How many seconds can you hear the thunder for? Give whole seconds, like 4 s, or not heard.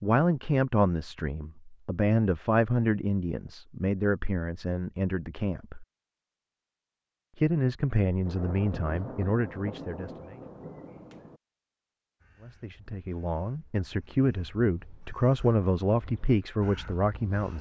3 s.